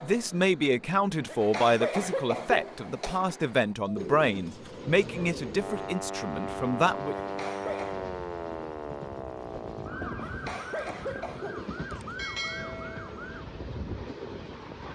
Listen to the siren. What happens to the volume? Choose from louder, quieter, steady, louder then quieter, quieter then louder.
quieter.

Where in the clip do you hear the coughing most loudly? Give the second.
2 s.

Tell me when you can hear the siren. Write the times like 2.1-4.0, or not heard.
5.5-13.3.